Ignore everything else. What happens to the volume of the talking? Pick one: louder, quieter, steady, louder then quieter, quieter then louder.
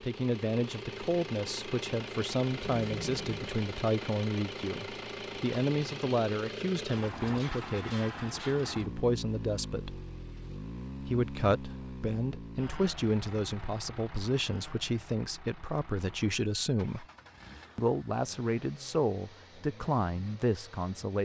steady.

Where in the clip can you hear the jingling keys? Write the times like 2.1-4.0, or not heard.
2.6-3.5.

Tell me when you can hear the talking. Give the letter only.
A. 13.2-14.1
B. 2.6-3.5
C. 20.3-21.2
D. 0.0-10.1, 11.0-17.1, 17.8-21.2
D.